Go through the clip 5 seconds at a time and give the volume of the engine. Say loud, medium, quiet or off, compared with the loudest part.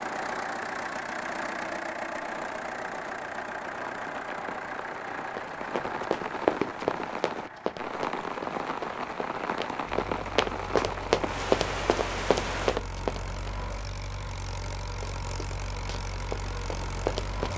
loud, medium, medium, loud.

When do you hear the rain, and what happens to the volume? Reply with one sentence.
The rain can be heard from 0.0 to 12.8 s, getting louder.